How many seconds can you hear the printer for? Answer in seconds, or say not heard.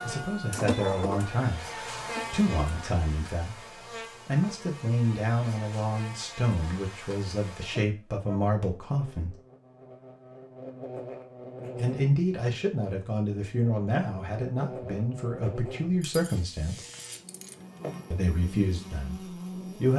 3 s.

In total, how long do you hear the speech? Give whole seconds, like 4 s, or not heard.
16 s.